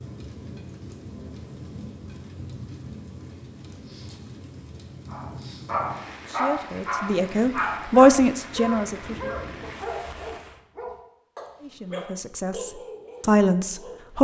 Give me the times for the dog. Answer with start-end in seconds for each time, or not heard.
5.1-14.1.